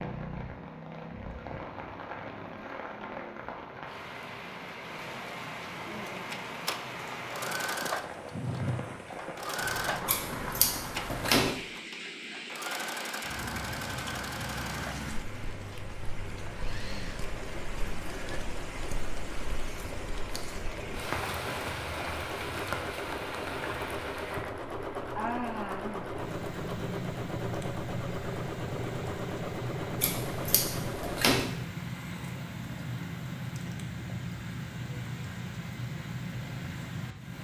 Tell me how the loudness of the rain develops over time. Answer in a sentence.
The loudness of the rain stays about the same.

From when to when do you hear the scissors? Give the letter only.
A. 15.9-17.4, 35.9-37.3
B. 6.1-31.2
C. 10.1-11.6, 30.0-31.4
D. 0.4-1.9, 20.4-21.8
C.